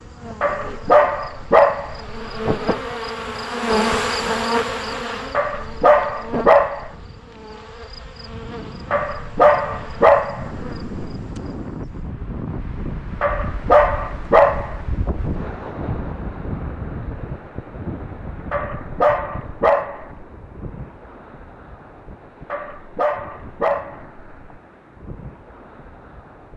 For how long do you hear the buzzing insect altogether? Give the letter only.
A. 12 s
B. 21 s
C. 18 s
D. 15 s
A.